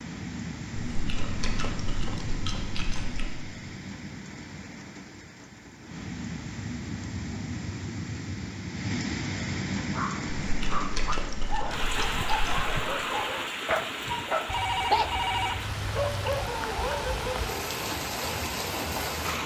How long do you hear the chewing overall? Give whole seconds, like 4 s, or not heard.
5 s.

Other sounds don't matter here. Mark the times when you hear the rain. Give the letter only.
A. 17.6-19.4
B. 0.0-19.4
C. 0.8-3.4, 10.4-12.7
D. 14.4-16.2
B.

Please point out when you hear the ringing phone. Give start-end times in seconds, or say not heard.
14.4-16.2.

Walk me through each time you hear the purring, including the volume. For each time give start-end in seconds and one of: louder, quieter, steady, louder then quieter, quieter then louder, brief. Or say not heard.
not heard.